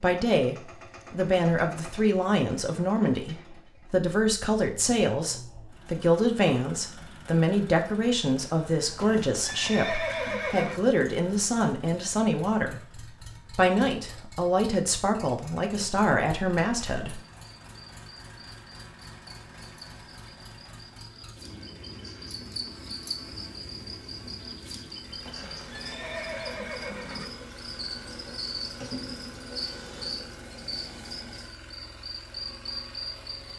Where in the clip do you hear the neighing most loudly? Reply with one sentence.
The volume of the neighing peaks at 10 seconds.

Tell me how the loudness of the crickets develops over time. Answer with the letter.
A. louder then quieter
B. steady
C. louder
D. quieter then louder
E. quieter
C.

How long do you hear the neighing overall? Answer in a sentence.
The neighing can be heard for 4 seconds in total.